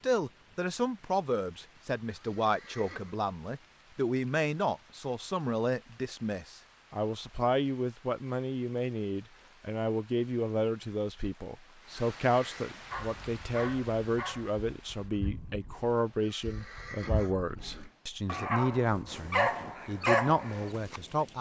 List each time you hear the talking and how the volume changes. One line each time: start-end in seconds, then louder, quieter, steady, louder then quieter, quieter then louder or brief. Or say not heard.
0.0-21.3 steady.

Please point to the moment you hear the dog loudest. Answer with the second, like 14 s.
20 s.